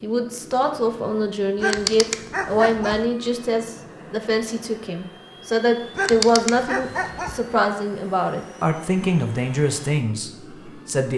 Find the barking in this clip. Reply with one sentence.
The barking can be heard from 1.6 to 3.0 s and from 6.0 to 7.4 s.